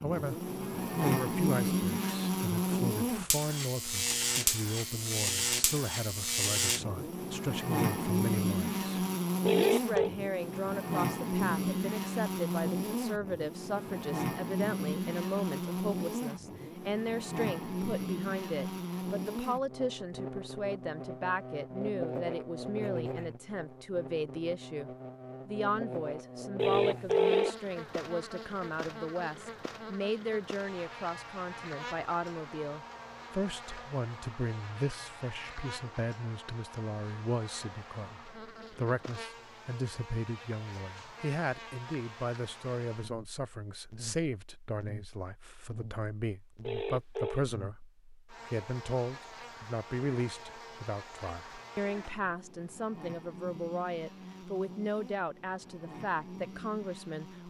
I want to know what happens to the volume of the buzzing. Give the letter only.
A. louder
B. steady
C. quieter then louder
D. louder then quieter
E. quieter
E.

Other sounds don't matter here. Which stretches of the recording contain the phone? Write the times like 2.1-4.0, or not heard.
9.4-10.1, 26.6-27.6, 46.6-47.5.